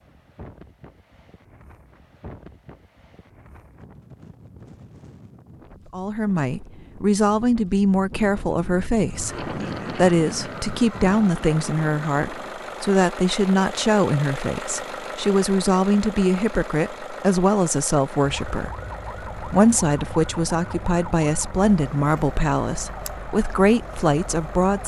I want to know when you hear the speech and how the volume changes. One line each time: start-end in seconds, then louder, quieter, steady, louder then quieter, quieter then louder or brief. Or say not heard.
5.9-24.8 steady.